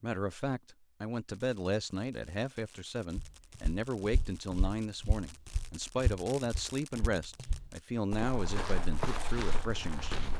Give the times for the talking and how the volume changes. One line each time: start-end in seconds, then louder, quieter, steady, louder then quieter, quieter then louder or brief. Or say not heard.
0.0-10.3 steady.